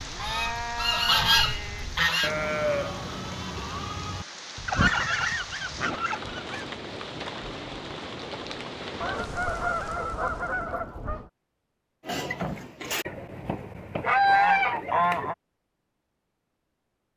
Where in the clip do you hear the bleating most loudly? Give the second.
3 s.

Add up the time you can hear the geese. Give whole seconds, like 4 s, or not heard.
9 s.